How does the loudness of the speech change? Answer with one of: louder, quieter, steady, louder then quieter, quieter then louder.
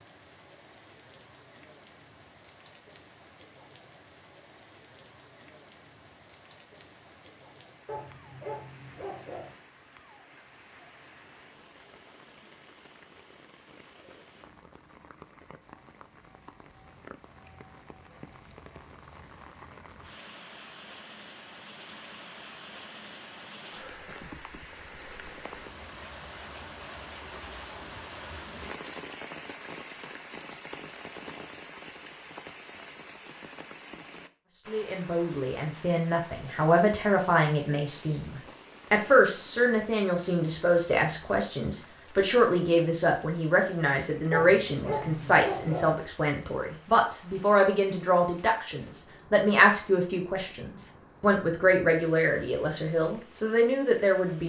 steady.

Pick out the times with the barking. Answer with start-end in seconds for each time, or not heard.
7.8-9.6, 44.3-46.0.